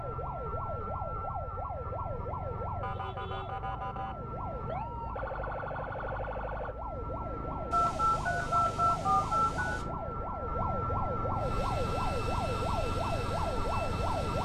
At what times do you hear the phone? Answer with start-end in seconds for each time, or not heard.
7.7-9.8.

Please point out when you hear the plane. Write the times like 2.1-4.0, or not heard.
11.3-14.4.